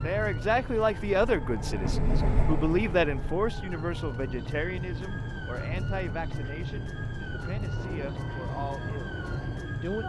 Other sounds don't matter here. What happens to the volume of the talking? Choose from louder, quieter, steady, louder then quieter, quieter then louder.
quieter.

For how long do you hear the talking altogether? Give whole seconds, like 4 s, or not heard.
10 s.